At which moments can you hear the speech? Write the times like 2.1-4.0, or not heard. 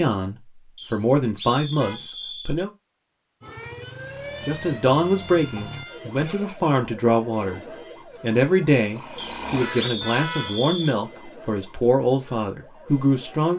0.0-2.7, 4.5-13.5.